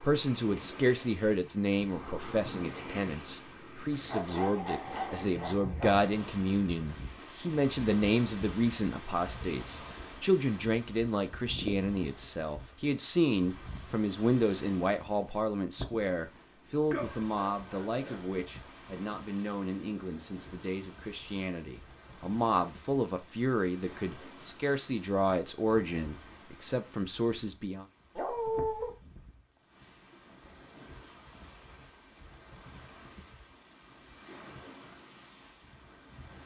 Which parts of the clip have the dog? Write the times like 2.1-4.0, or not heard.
4.0-6.0, 16.9-18.3, 28.1-28.9.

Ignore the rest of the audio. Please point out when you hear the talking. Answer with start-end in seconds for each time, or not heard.
0.0-27.9.